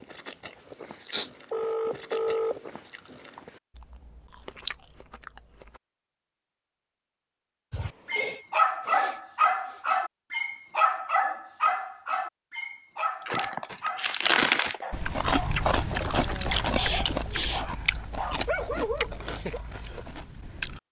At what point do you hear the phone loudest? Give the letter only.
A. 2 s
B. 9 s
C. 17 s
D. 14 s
A.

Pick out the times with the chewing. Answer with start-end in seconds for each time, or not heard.
0.0-5.8, 13.2-20.8.